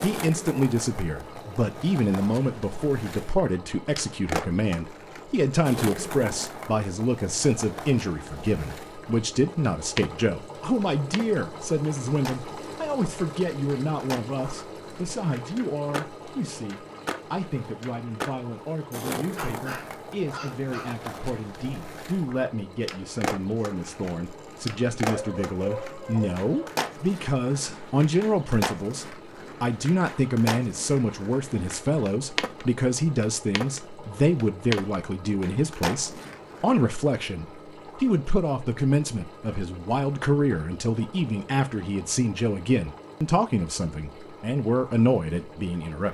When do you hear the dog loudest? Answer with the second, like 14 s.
26 s.